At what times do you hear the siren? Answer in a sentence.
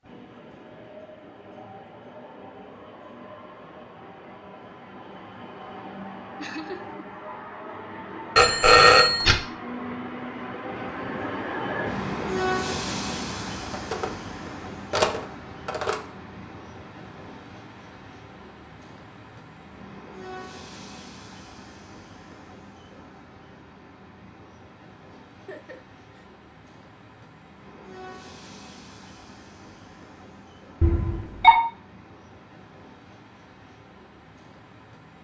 The siren can't be heard in this clip.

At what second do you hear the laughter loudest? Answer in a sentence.
The loudest moment of the laughter is at 7 seconds.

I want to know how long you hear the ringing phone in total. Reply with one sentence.
You can hear the ringing phone for 3 seconds altogether.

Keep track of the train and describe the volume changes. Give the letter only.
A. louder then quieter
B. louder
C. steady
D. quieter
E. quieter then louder
A.